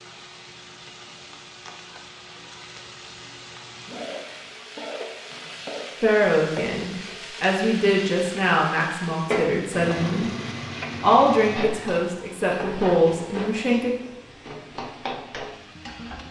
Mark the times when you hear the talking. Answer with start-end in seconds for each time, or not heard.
6.0-10.3, 11.0-13.9.